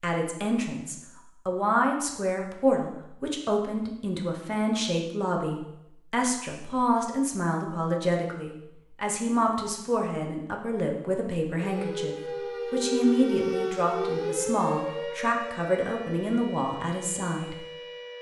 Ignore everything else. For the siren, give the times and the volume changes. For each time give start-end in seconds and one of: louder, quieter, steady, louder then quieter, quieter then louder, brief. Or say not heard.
11.6-18.1 quieter.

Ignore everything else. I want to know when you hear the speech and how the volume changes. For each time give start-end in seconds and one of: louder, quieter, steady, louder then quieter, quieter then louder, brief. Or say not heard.
0.0-17.6 steady.